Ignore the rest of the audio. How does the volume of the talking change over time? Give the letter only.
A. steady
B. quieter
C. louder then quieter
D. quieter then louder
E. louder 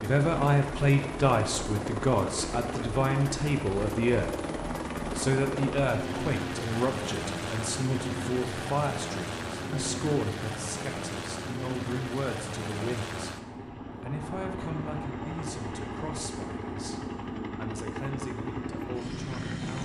B.